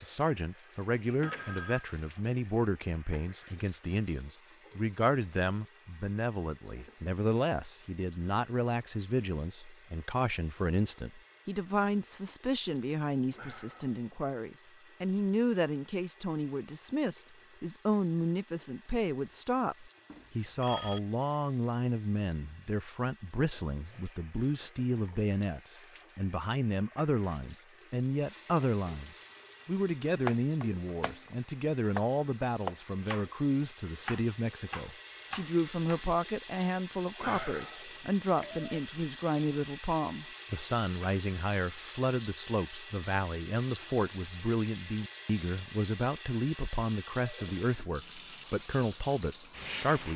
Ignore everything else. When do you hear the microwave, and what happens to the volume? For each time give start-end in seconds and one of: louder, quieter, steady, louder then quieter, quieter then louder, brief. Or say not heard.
not heard.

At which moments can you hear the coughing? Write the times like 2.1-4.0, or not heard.
not heard.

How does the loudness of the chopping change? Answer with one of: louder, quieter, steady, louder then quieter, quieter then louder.
louder then quieter.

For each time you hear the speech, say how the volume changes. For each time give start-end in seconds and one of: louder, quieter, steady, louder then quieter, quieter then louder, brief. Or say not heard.
0.0-50.1 steady.